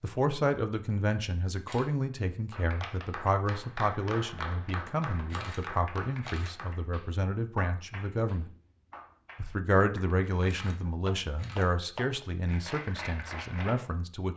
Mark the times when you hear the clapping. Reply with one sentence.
The clapping can be heard from 2.5 to 13.8 s.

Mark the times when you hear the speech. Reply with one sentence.
The speech can be heard from 0.0 to 8.5 s and from 9.3 to 14.3 s.